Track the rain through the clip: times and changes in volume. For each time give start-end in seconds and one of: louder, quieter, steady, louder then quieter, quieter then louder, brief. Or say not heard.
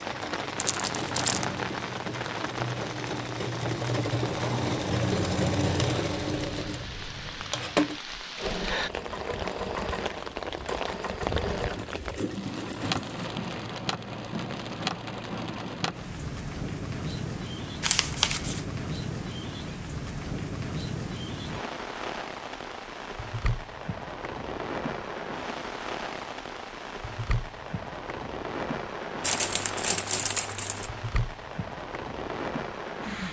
0.0-33.2 steady.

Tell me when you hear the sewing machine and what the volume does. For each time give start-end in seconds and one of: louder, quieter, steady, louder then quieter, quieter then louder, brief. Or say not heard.
0.0-13.3 louder then quieter.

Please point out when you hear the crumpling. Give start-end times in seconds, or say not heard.
0.6-1.4, 17.8-18.6, 29.2-30.9.